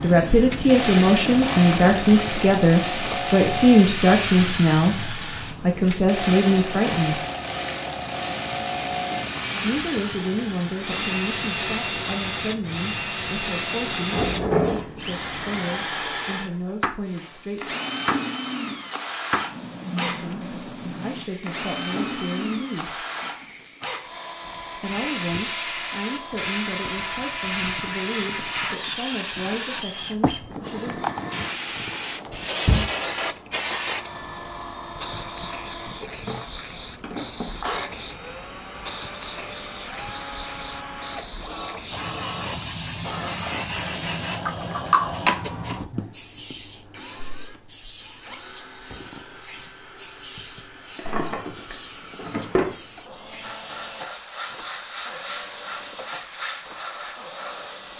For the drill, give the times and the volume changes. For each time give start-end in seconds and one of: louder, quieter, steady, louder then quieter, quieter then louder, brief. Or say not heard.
0.0-57.9 quieter.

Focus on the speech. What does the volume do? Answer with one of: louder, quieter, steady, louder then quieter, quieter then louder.
quieter.